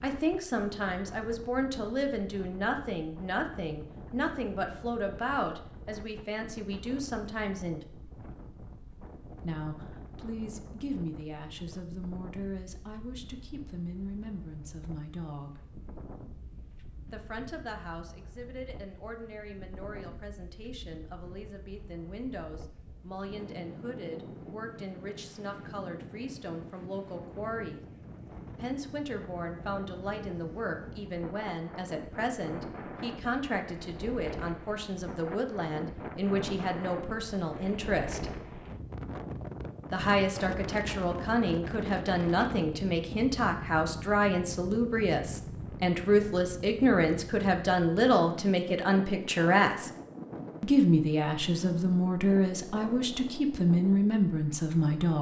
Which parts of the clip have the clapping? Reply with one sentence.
You can't hear the clapping here.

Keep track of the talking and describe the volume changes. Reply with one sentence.
The volume of the talking goes down, then up.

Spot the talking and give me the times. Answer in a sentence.
You can hear the talking from 0.0 to 7.8 s, from 9.3 to 15.7 s, from 17.1 to 27.8 s, from 28.6 to 38.3 s, from 39.9 to 49.9 s and from 50.6 to 55.1 s.